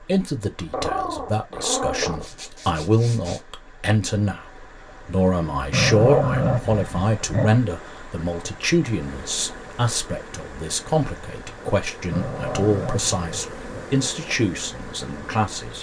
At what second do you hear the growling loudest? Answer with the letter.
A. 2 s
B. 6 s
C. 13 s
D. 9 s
B.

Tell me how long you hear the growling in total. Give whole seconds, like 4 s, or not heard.
5 s.